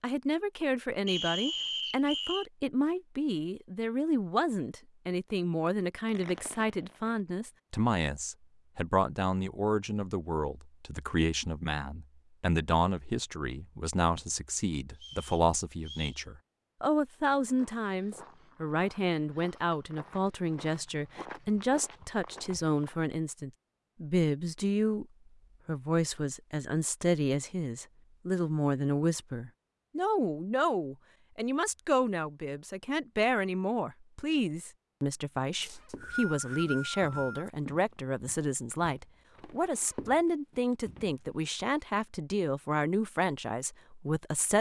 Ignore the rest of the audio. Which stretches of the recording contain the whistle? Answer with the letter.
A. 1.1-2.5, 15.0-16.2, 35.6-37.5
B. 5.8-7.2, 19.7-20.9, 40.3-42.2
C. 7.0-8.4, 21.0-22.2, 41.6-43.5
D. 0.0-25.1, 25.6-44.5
A.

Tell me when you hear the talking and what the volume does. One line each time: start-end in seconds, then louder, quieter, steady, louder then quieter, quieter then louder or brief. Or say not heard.
0.0-25.1 steady
25.6-44.5 steady.